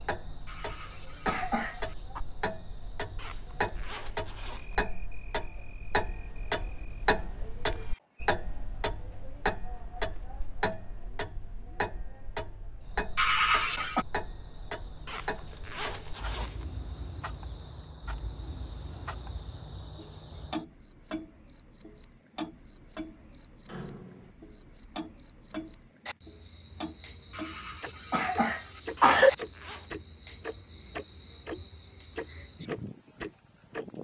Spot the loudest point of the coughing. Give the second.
29 s.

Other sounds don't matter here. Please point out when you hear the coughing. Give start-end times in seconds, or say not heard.
0.5-2.2, 13.2-14.1, 27.4-29.3.